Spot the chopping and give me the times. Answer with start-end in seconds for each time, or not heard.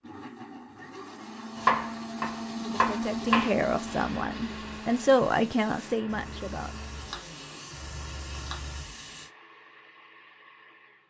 1.6-3.5, 7.0-8.6.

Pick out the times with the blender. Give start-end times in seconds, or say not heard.
0.0-11.0.